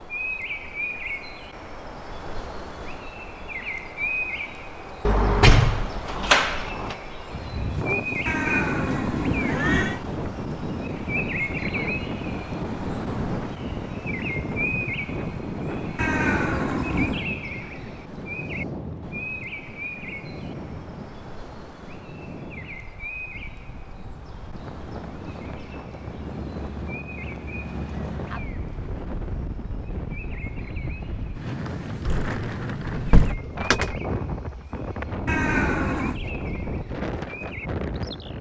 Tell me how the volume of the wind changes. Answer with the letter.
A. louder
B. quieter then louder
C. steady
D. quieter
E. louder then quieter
B.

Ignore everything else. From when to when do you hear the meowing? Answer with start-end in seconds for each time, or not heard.
8.2-10.0, 15.9-17.2, 35.2-36.2.